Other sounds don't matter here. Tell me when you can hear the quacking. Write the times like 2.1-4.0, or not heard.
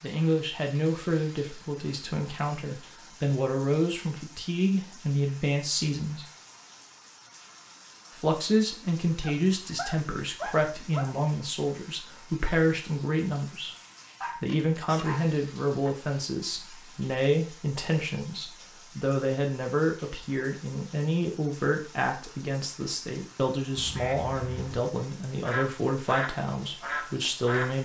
23.8-27.7.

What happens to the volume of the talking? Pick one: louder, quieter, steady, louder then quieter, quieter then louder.
steady.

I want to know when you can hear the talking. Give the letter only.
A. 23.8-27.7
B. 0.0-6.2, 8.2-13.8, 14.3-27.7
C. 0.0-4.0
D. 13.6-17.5
B.